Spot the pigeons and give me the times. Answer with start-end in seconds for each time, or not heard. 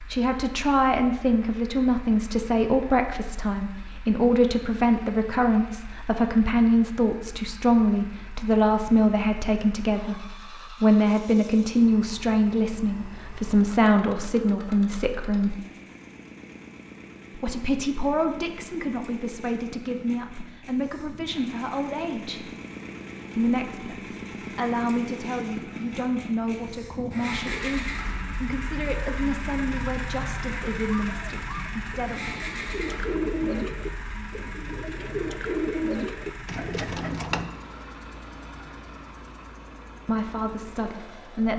31.1-37.5.